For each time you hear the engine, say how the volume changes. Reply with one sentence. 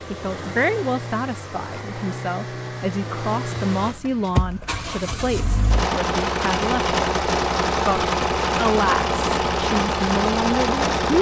The engine can be heard from 0.0 to 11.1 s, getting louder.